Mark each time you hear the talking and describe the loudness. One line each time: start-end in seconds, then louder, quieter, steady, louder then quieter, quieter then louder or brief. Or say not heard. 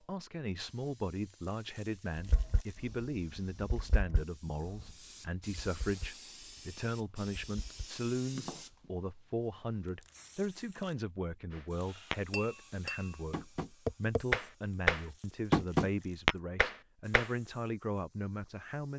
0.1-18.9 steady.